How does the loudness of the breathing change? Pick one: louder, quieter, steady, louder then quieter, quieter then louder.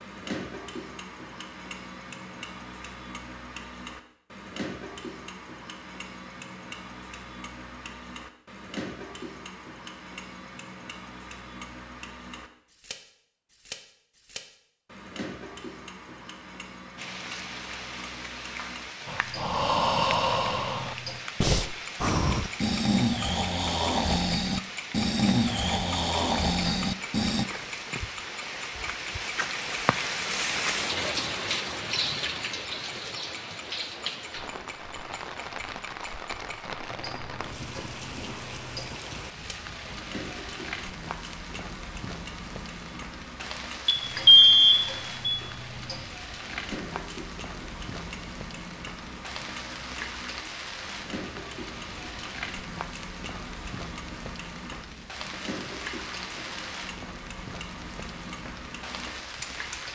steady.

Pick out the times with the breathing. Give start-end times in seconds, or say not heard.
19.1-27.4.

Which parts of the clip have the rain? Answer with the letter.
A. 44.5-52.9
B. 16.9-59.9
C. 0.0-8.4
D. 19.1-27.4
B.